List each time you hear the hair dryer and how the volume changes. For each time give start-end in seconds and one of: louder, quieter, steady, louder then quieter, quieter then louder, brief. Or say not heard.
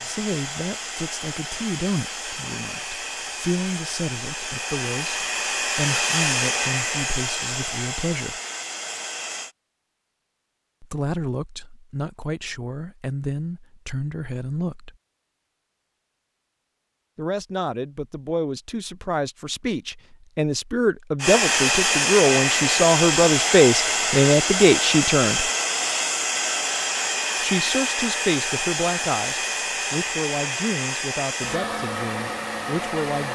0.0-9.6 louder then quieter
21.2-33.3 quieter.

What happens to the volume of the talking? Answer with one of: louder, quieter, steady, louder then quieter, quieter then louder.
louder then quieter.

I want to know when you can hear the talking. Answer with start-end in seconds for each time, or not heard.
0.0-8.4, 10.8-14.9, 17.1-25.5, 27.4-33.3.